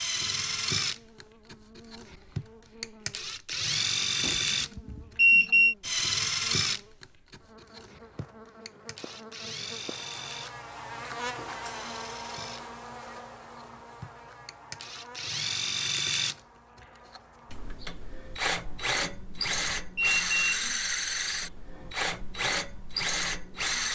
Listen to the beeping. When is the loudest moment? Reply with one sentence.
The loudest moment of the beeping is at 5 seconds.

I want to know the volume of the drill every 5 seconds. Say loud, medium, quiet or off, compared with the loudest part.
loud, loud, quiet, loud, loud.